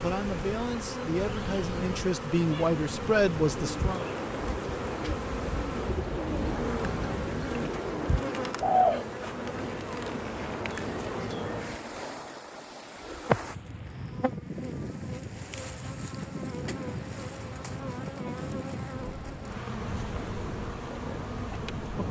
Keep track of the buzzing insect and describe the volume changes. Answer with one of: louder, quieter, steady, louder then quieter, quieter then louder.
steady.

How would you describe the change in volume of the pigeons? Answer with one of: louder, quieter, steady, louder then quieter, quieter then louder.
louder.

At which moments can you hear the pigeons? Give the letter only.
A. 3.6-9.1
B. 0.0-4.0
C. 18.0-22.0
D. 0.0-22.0
A.